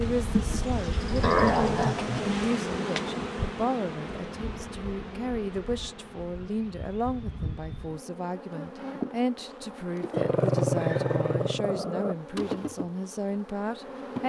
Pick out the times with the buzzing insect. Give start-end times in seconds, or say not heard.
0.0-14.2.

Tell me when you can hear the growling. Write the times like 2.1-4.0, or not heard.
1.2-2.3, 10.1-12.2.